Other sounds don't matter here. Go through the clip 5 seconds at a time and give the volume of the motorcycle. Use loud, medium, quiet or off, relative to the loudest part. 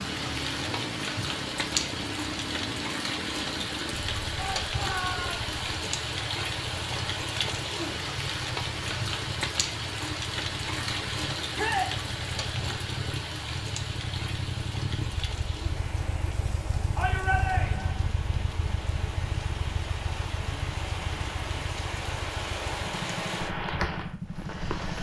loud, medium, loud, loud, loud.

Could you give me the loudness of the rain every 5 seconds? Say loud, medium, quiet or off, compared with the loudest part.
loud, loud, loud, medium, loud.